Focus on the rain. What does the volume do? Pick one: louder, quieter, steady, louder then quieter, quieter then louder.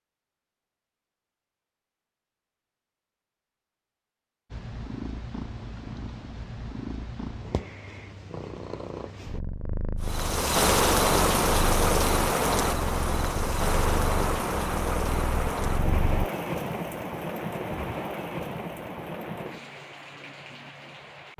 quieter.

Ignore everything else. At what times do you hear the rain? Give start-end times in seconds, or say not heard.
10.0-21.3.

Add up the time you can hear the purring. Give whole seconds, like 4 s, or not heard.
12 s.